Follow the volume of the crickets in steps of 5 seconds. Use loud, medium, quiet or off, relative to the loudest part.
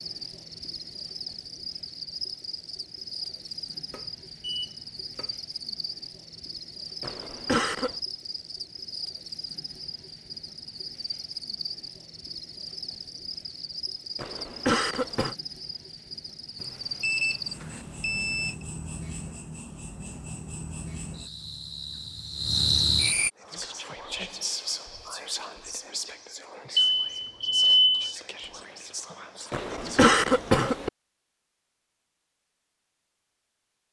medium, medium, medium, medium, loud, off, off.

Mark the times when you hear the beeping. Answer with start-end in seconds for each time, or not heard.
3.9-5.3, 16.6-18.6, 26.8-28.1.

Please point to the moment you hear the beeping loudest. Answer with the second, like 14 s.
28 s.